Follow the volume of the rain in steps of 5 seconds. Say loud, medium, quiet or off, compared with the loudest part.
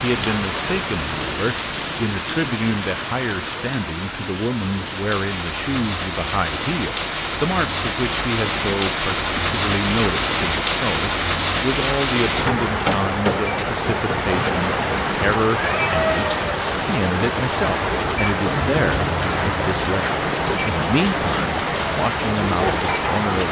medium, loud, loud, loud, loud.